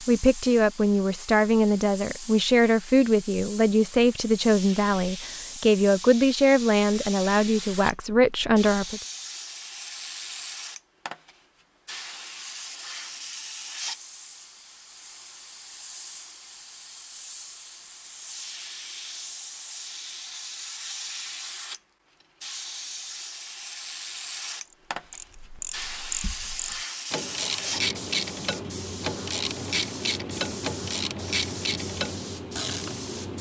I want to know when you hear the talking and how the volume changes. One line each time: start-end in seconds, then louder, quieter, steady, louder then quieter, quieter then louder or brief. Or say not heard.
0.0-9.0 steady.